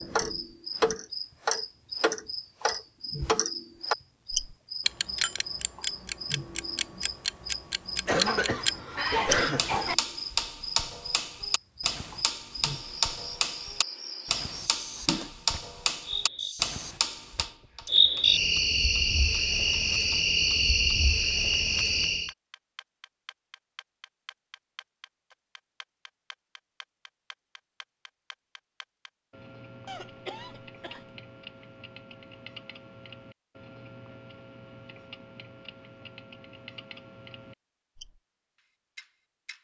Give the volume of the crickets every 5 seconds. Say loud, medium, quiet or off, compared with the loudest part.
quiet, quiet, quiet, loud, loud, off, off, off.